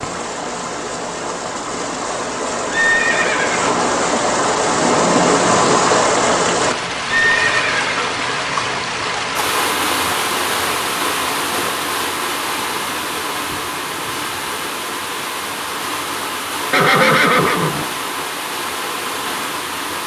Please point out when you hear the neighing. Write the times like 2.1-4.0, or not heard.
2.7-3.8, 7.0-8.2, 16.7-17.9.